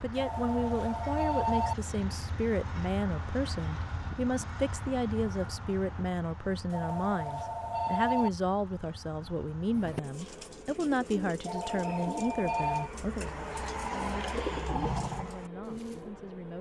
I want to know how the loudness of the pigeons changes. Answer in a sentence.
The loudness of the pigeons goes up.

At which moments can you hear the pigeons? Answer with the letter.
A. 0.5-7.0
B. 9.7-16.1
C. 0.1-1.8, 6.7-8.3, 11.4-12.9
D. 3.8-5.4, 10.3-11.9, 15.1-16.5
B.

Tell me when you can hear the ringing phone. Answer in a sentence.
You can hear the ringing phone from 0.1 to 1.8 s, from 6.7 to 8.3 s and from 11.4 to 12.9 s.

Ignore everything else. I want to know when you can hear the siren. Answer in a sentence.
The siren can't be heard in this clip.